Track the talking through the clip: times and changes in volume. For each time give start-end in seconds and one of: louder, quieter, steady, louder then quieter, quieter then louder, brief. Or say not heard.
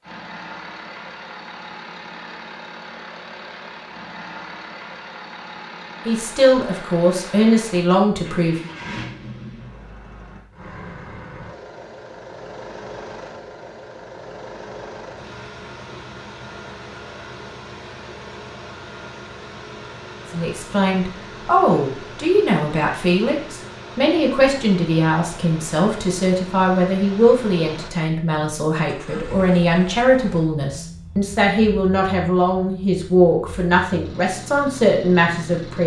6.0-8.7 brief
20.3-35.8 steady.